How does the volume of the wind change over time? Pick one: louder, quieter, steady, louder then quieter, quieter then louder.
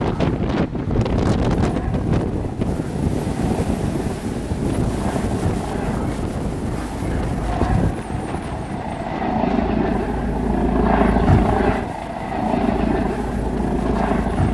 quieter.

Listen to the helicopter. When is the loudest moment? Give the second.
11 s.